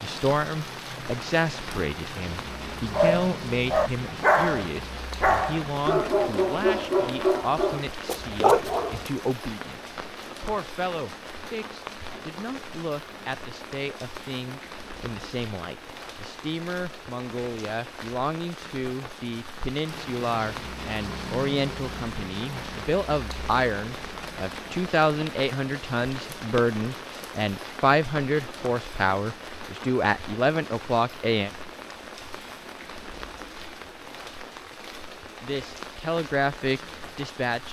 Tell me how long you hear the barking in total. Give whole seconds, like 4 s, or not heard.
6 s.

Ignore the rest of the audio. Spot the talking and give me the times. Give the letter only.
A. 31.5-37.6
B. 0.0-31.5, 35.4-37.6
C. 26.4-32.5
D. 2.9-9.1
B.